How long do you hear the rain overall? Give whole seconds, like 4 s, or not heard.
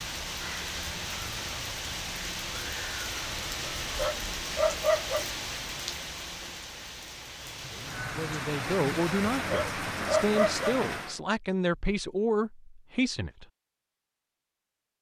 11 s.